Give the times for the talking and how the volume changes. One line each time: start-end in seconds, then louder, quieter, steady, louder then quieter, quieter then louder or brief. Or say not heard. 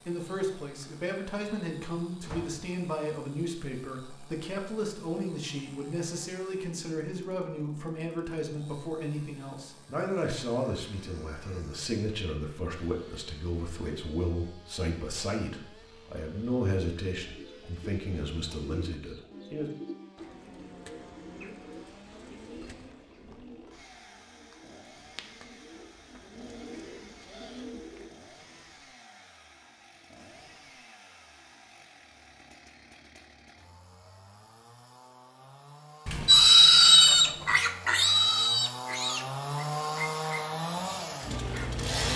0.1-19.7 steady.